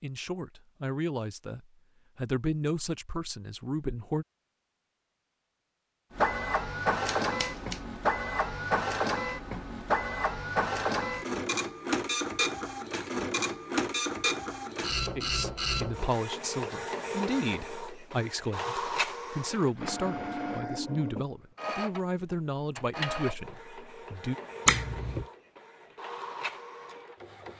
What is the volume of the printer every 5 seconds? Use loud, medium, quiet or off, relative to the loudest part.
off, loud, loud, medium, medium, quiet.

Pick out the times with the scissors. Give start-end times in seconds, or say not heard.
7.0-7.8, 24.6-25.2.